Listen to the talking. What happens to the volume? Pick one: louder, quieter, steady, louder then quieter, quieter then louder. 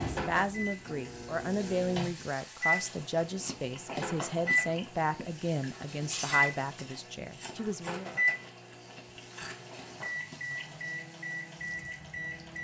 steady.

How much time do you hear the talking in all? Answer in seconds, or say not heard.
8 s.